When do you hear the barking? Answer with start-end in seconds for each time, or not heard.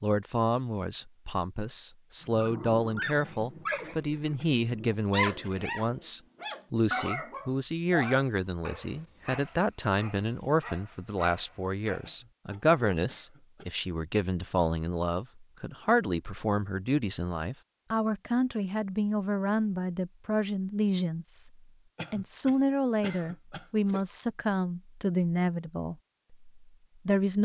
2.2-12.8.